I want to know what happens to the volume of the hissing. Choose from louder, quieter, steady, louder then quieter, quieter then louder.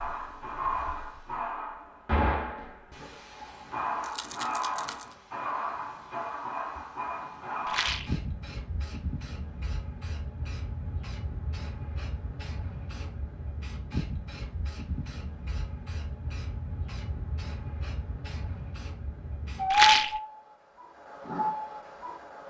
quieter then louder.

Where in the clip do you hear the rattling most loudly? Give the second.
20 s.